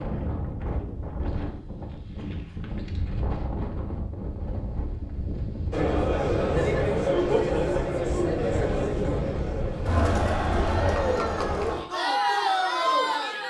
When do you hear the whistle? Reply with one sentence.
The whistle can't be heard in this clip.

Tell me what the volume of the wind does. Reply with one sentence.
The volume of the wind stays about the same.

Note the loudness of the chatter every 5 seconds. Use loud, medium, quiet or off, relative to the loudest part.
off, loud, loud.